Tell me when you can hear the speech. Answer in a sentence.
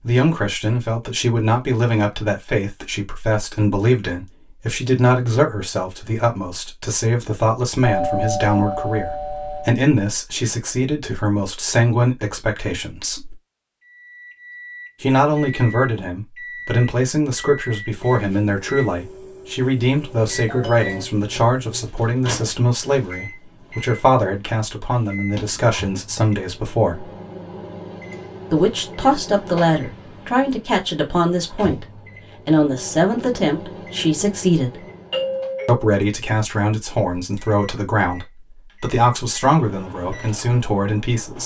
The speech can be heard from 0.0 to 13.3 s, from 15.0 to 27.1 s, from 28.5 to 34.9 s and from 35.6 to 41.4 s.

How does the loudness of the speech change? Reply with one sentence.
The loudness of the speech stays about the same.